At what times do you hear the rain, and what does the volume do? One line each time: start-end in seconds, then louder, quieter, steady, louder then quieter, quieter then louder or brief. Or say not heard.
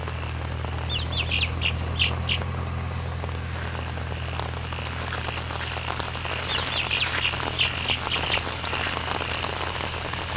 0.0-10.3 louder.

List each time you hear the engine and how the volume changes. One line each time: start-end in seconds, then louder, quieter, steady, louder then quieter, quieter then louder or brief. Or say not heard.
0.0-10.3 quieter.